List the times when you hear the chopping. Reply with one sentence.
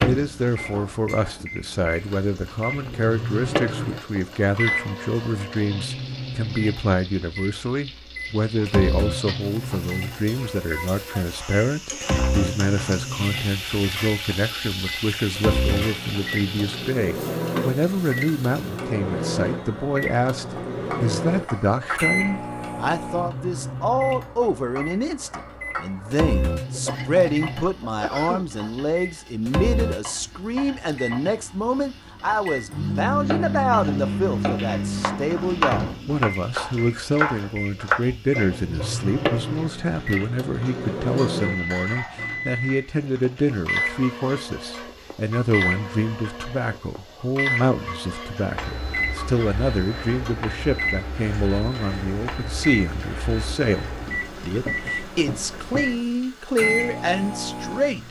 The chopping can be heard from 33.0 to 38.0 s.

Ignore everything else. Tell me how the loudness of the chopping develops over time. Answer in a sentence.
The loudness of the chopping goes up.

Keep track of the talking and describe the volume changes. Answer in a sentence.
The loudness of the talking stays about the same.